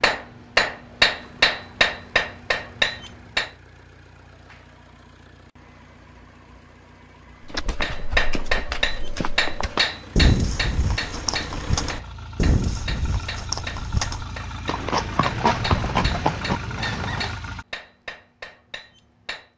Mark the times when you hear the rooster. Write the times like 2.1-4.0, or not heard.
15.2-17.2.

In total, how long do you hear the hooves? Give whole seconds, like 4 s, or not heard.
10 s.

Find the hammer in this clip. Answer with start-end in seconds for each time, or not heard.
0.0-3.5, 7.8-19.5.